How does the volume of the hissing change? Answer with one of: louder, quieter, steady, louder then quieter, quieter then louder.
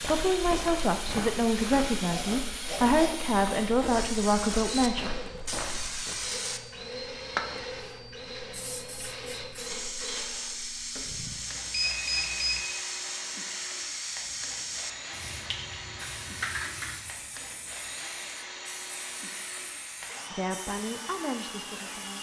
quieter.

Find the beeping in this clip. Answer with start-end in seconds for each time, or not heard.
11.1-12.6.